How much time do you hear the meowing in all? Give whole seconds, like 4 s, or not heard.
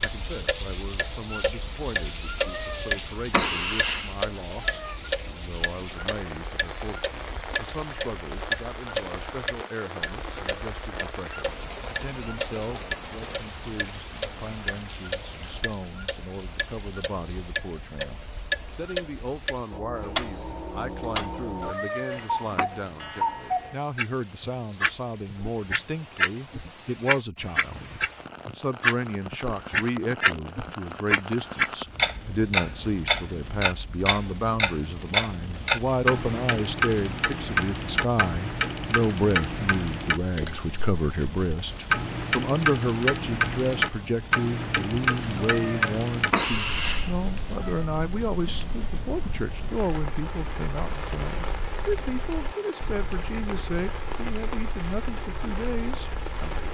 6 s.